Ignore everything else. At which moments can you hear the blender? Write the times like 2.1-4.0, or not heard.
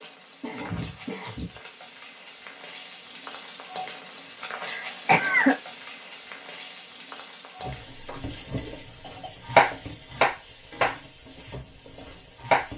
not heard.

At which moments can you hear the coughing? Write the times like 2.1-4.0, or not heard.
0.4-1.6, 4.6-5.5, 8.8-9.8.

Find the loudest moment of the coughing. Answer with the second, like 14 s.
5 s.